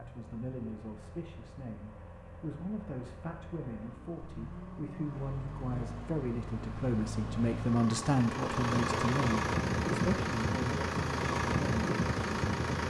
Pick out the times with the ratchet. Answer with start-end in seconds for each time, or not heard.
not heard.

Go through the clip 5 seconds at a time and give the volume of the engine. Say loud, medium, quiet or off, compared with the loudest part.
quiet, loud, loud.